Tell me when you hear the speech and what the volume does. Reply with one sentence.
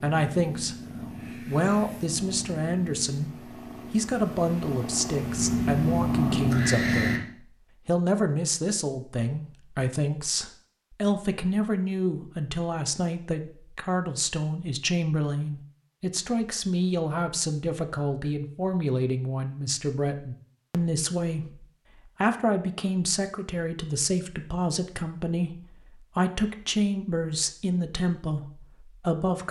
You can hear the speech from 0.0 to 29.4 s, at a steady volume.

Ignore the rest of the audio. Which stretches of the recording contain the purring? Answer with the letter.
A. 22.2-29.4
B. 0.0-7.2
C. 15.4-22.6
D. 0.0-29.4
B.